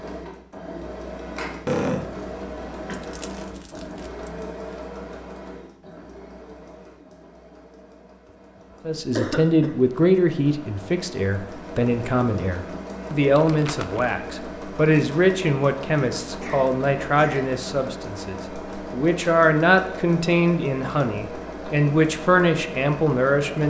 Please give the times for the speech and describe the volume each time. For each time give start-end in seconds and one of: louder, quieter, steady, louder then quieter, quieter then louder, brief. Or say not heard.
8.8-23.6 steady.